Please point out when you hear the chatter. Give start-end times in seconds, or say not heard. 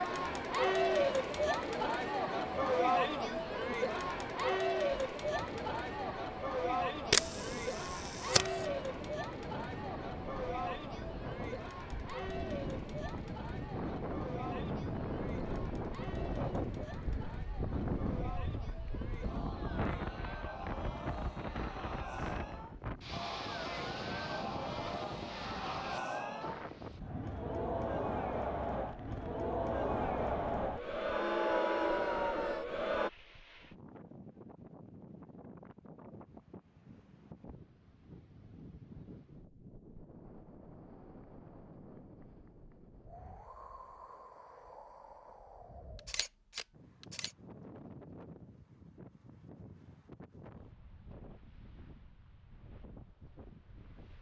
0.0-33.1.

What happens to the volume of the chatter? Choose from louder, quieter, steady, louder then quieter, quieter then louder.
quieter then louder.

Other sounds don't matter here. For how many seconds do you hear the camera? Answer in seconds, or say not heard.
3 s.